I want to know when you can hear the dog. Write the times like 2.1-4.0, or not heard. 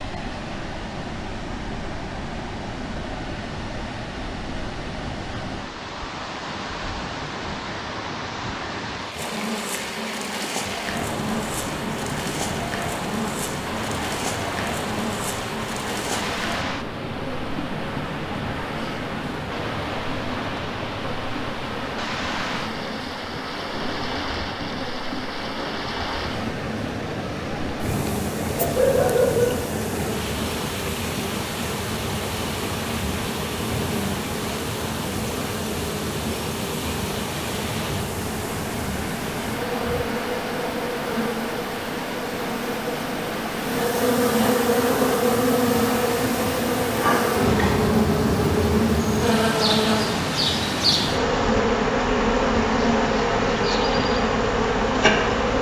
28.6-29.6.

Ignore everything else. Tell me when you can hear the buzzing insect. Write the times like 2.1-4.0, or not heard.
9.1-55.5.